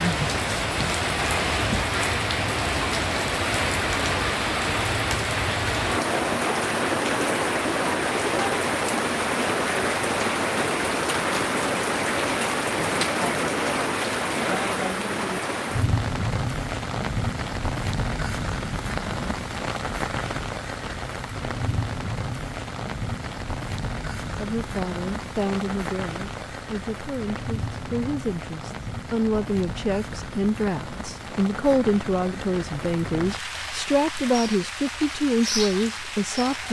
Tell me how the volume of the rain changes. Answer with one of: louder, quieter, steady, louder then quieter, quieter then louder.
quieter.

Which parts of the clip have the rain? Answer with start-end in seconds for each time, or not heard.
0.0-36.6.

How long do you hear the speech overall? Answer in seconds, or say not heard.
12 s.